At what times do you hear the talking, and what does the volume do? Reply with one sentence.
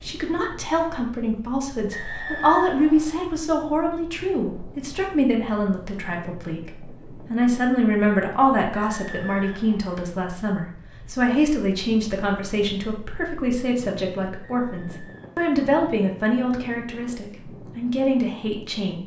You can hear the talking from 0.0 to 19.0 s, at a steady volume.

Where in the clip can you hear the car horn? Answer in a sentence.
The car horn can't be heard in this clip.